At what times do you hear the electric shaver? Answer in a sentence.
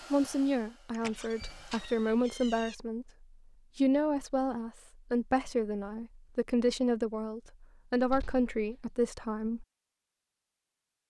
You can't hear the electric shaver here.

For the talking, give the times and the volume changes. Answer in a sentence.
The talking can be heard from 0.1 to 9.7 s, at a steady volume.